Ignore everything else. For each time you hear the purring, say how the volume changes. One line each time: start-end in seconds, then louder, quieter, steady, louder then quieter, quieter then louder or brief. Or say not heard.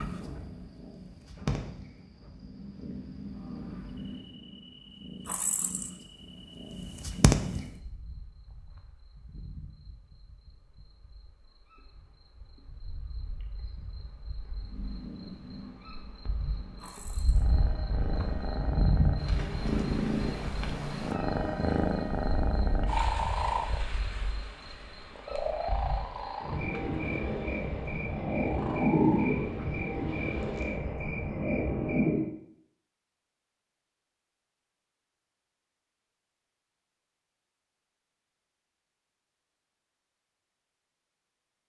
0.0-7.7 quieter then louder
14.6-30.8 louder then quieter.